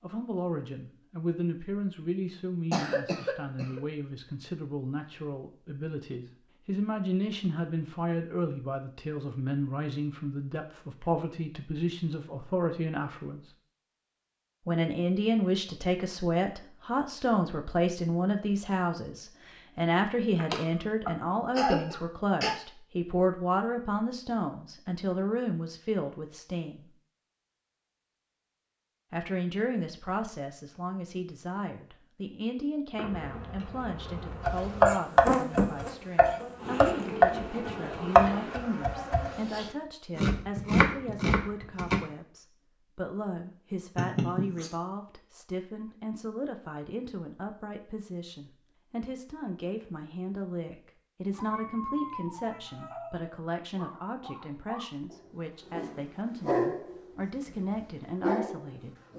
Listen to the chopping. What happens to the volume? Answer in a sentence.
The volume of the chopping goes down, then up.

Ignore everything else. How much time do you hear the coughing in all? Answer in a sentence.
You can hear the coughing for 4 seconds altogether.